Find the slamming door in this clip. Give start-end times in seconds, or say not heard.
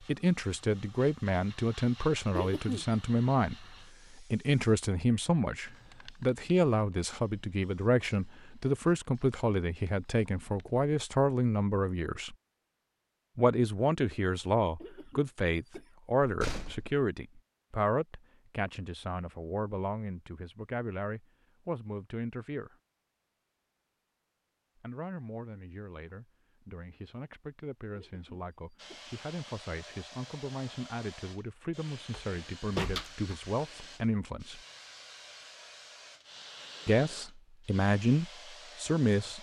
16.2-17.1, 32.1-33.4.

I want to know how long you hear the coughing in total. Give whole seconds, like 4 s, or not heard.
3 s.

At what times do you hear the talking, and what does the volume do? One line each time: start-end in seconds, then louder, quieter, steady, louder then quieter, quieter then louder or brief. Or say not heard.
0.1-12.3 steady
13.3-22.8 quieter
24.8-34.6 louder
36.9-39.3 brief.